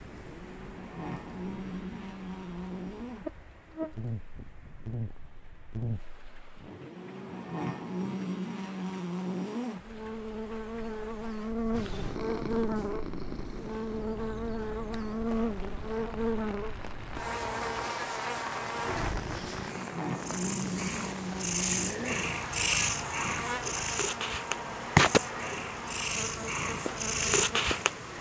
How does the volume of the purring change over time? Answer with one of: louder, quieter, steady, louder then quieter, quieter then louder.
quieter then louder.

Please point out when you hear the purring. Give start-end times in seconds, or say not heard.
11.7-28.1.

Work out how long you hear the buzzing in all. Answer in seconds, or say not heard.
28 s.